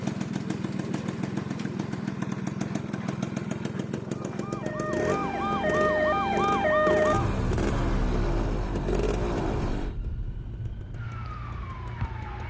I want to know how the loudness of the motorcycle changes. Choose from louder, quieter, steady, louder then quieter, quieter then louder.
quieter.